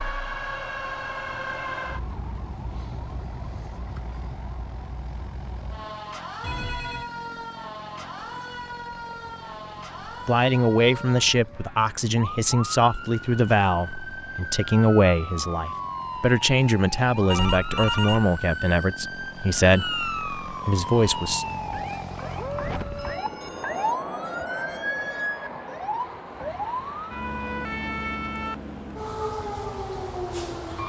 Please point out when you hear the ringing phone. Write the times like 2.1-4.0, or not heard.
6.4-7.1, 17.3-18.3, 22.9-25.3.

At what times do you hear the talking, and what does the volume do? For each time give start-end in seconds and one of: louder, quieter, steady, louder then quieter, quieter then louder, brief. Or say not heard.
10.2-21.4 steady.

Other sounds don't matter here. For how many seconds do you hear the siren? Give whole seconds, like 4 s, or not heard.
31 s.